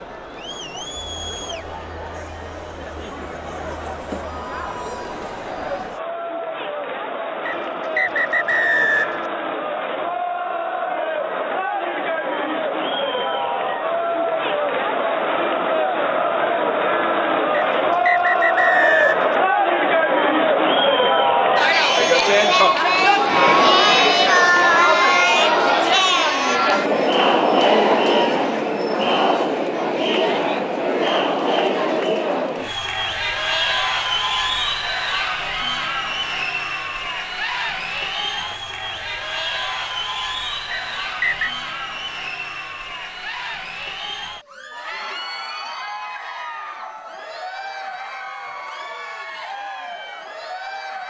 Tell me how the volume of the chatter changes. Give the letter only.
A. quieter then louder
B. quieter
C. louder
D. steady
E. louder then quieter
E.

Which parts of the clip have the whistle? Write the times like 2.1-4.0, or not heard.
7.5-9.2, 17.5-19.4, 40.7-41.5.